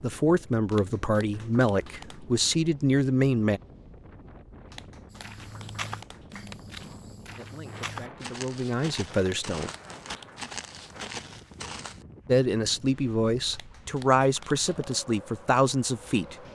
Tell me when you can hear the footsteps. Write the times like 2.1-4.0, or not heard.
5.1-12.1.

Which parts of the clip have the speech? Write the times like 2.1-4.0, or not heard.
0.0-3.6, 7.3-9.7, 12.2-16.4.